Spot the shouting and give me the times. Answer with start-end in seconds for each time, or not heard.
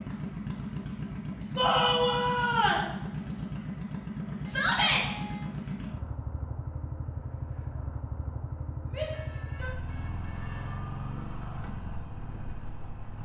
1.6-2.9, 4.5-5.0, 8.9-9.7.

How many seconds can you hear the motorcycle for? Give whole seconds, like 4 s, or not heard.
13 s.